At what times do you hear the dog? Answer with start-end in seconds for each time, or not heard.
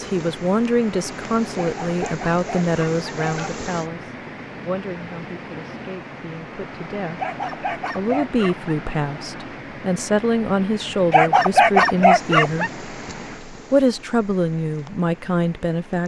1.6-3.5, 7.2-8.8, 11.1-12.7.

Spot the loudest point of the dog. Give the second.
12 s.